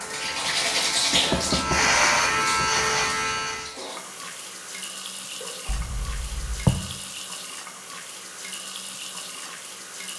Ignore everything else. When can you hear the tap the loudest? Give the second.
1 s.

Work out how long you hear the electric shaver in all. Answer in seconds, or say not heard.
4 s.